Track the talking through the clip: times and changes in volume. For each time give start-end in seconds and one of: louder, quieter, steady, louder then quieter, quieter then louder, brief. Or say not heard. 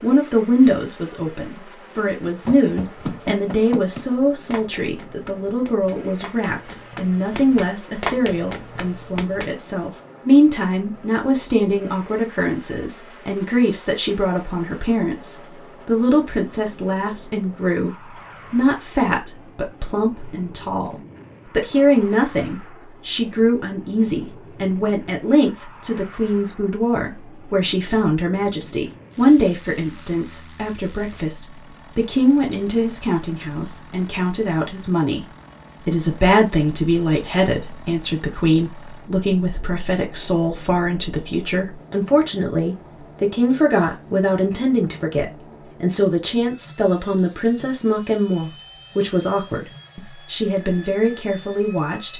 0.0-52.1 steady.